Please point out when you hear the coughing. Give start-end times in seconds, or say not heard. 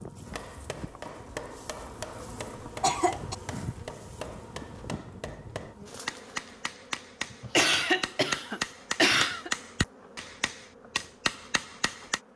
2.8-3.4, 7.3-9.5.